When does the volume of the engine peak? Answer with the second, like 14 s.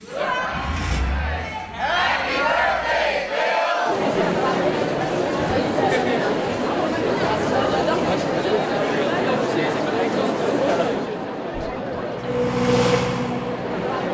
13 s.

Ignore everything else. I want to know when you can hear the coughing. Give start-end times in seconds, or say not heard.
not heard.